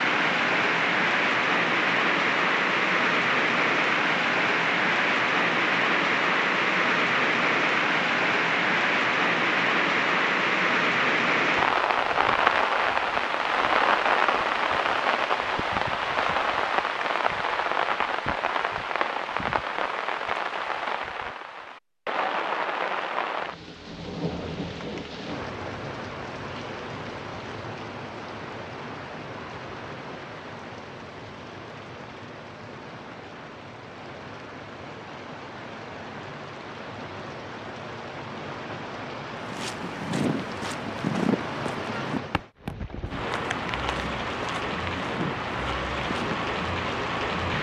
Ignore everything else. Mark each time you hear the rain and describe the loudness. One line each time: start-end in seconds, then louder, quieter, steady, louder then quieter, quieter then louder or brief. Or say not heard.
0.0-47.5 quieter then louder.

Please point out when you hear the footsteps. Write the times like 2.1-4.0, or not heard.
39.4-46.5.